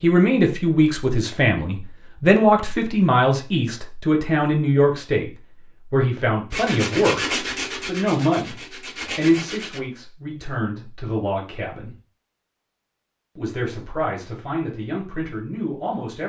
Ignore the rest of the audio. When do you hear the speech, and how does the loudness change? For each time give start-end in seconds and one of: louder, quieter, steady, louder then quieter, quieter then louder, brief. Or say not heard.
0.0-11.9 quieter
13.3-16.2 brief.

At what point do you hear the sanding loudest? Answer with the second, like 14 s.
7 s.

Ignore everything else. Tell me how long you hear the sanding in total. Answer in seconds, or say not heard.
3 s.